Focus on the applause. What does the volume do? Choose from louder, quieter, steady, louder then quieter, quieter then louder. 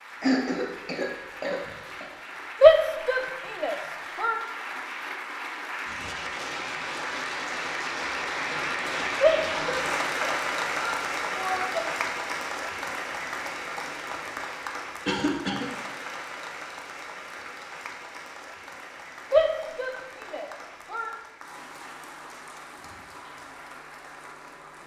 louder then quieter.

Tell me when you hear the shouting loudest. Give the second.
3 s.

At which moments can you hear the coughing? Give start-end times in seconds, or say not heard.
0.2-2.1, 15.1-15.8.